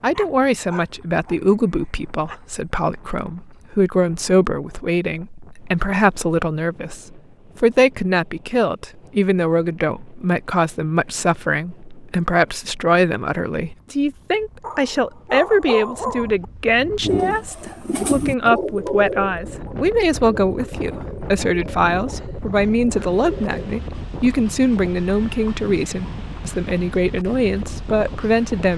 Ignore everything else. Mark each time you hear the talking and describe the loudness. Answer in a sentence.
The talking can be heard from 0.0 to 28.7 s, at a steady volume.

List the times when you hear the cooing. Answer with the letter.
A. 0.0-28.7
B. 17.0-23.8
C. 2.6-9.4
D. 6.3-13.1
B.